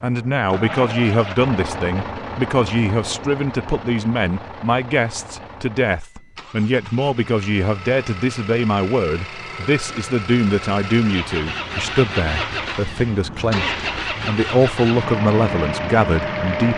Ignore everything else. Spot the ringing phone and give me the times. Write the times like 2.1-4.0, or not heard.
not heard.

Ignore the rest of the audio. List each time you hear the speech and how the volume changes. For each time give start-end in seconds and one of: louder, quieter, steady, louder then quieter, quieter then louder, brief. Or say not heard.
0.0-16.7 steady.